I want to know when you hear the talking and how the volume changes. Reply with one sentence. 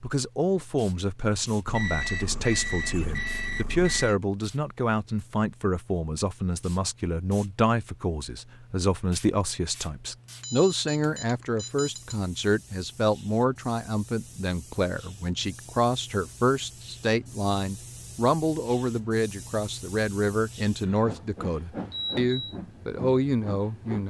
The talking can be heard from 0.0 to 24.0 s, at a steady volume.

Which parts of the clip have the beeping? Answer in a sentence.
The beeping can be heard from 1.6 to 4.2 s, from 10.4 to 12.2 s and from 20.8 to 22.6 s.